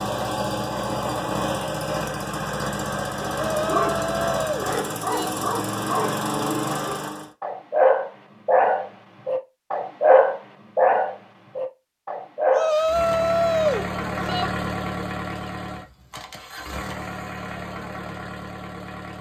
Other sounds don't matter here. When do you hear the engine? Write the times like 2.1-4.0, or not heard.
0.0-7.3, 12.6-19.1.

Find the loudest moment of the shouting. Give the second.
14 s.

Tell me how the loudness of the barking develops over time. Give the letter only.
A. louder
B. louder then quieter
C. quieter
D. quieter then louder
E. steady
A.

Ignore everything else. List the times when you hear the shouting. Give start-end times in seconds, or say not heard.
3.4-5.3, 12.5-14.5.